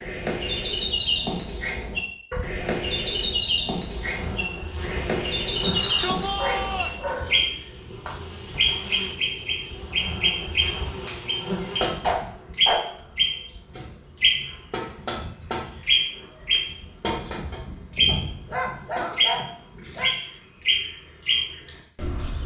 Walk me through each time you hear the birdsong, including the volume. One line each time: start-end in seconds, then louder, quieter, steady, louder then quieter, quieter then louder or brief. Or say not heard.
0.0-22.4 steady.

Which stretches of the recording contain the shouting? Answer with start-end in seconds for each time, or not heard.
5.6-7.0.